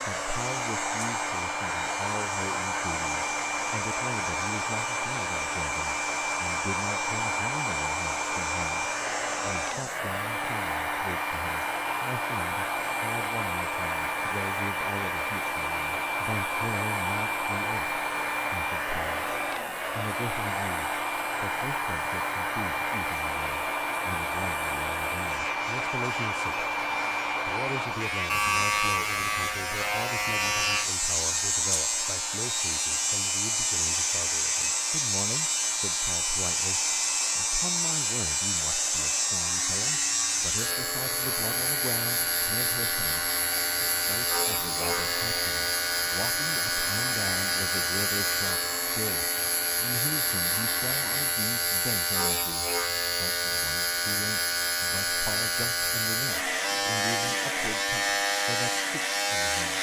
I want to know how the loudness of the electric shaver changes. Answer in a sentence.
The loudness of the electric shaver goes up.